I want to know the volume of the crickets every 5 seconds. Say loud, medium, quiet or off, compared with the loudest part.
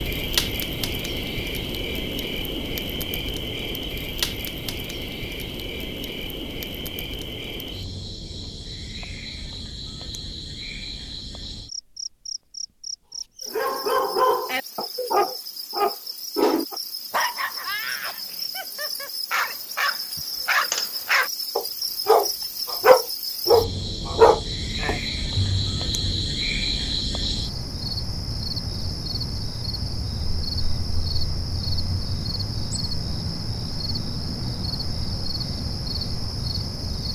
loud, medium, medium, medium, loud, loud, loud, loud.